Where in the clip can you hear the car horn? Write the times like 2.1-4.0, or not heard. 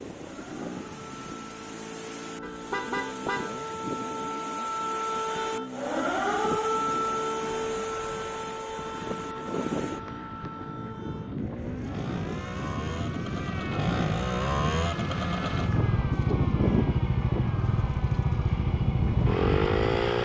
2.4-3.6.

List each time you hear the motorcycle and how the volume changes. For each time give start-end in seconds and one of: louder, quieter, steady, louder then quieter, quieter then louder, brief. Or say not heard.
0.0-20.1 louder.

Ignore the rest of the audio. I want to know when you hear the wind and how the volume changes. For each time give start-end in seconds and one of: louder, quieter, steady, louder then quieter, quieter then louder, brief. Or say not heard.
0.0-20.1 louder.